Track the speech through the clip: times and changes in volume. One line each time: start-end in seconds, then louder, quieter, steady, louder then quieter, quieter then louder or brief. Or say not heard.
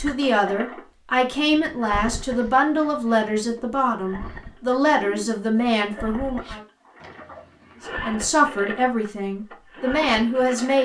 0.0-6.6 steady
8.1-10.8 brief.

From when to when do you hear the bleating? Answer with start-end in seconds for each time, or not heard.
not heard.